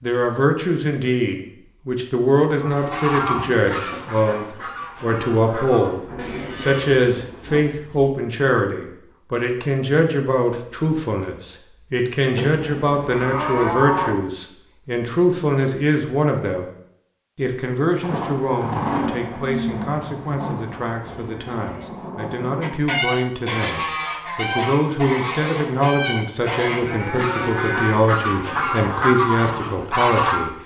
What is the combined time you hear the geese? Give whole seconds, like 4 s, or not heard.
11 s.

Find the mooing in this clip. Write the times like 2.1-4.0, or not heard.
2.6-3.8, 6.2-8.1, 12.3-14.2, 19.1-21.9, 26.8-28.0.